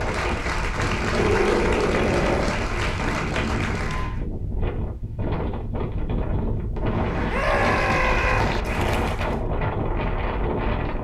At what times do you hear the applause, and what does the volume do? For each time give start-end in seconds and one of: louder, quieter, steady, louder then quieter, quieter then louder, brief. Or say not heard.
0.0-4.2 steady
6.8-9.4 brief.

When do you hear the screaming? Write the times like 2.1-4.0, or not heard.
1.1-2.6, 7.3-8.4.